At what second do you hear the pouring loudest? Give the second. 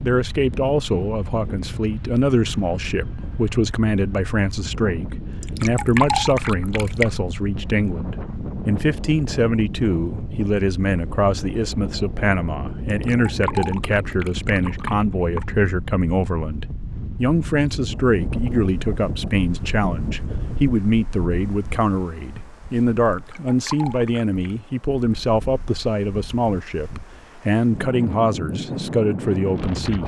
6 s.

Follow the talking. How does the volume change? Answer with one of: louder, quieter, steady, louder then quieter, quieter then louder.
steady.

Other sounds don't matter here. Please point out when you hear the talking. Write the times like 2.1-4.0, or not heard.
0.0-30.0.